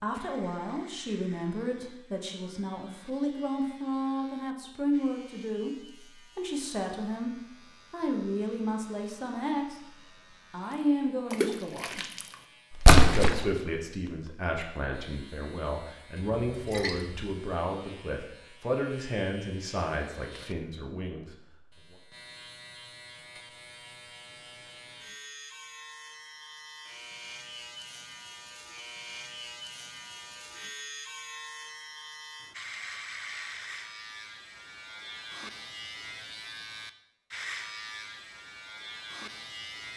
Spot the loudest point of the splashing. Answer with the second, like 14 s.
13 s.